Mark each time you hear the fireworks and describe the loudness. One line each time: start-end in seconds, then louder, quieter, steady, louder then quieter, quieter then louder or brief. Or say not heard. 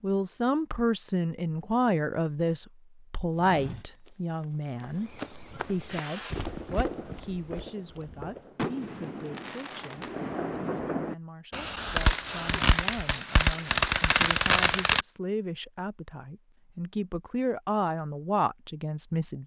5.7-15.1 louder.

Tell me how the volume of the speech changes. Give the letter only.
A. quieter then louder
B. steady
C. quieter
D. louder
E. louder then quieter
A.